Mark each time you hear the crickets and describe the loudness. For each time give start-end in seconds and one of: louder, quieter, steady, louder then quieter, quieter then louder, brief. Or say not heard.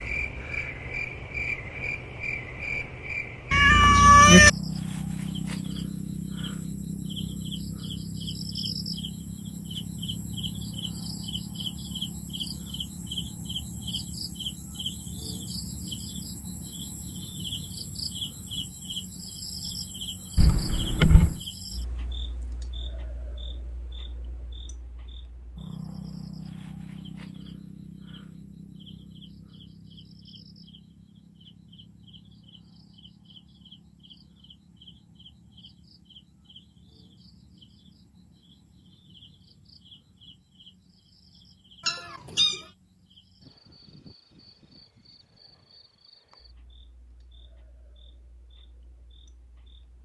0.0-49.9 quieter.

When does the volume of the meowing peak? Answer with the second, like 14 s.
4 s.